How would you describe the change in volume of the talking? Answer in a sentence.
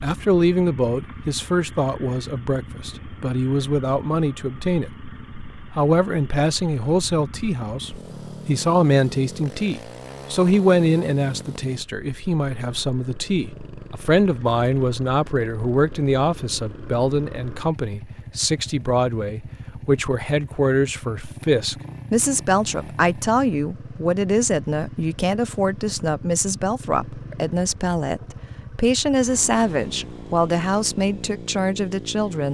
The volume of the talking stays about the same.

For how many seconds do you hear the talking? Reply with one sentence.
You can hear the talking for 32 seconds altogether.